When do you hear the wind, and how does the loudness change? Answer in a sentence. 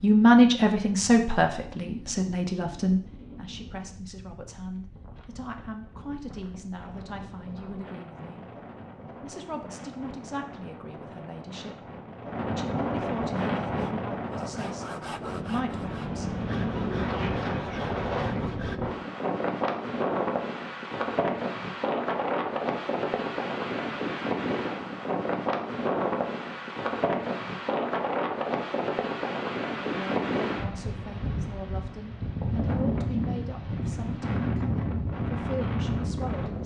The wind can be heard from 0.0 to 36.6 s, getting louder.